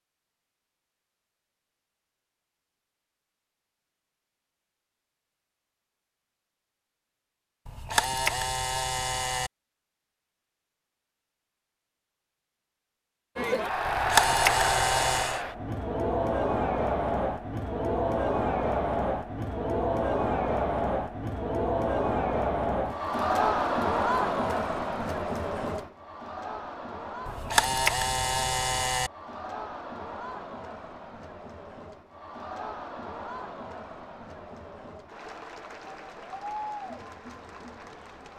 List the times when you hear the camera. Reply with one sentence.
You can hear the camera from 7.7 to 9.5 s, from 13.8 to 15.4 s and from 27.2 to 29.1 s.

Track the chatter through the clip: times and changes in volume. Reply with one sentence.
You can hear the chatter from 13.3 to 38.3 s, getting quieter.